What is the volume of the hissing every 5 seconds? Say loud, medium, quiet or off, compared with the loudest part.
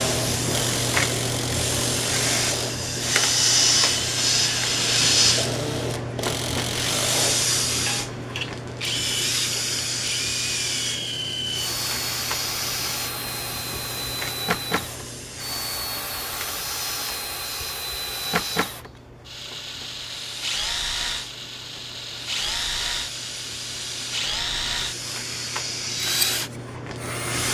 loud, loud, medium, quiet, quiet, medium.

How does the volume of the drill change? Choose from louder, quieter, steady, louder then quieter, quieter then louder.
steady.